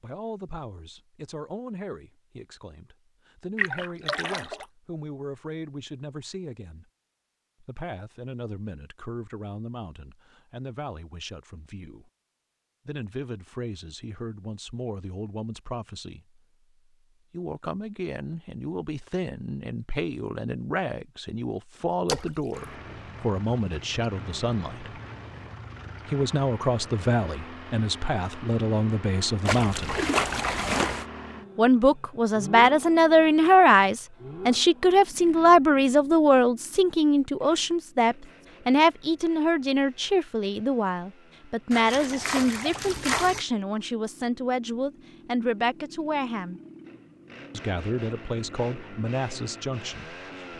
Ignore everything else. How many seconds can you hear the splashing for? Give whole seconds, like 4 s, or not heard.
5 s.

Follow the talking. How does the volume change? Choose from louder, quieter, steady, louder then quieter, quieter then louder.
louder then quieter.